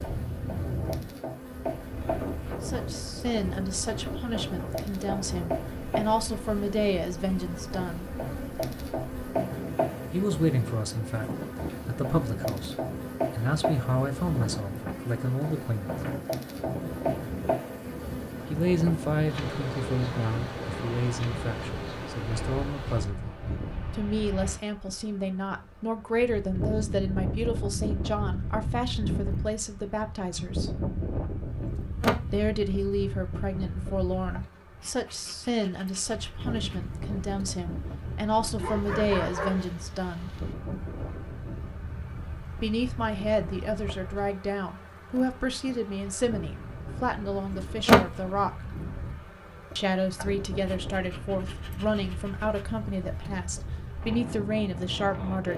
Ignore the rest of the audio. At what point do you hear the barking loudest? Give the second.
39 s.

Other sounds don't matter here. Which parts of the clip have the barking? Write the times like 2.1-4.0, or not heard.
38.5-40.5.